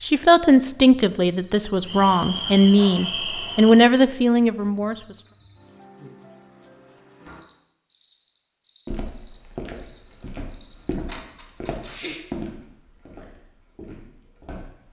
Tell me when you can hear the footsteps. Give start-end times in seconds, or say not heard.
8.8-14.8.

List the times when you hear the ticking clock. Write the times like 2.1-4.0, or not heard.
not heard.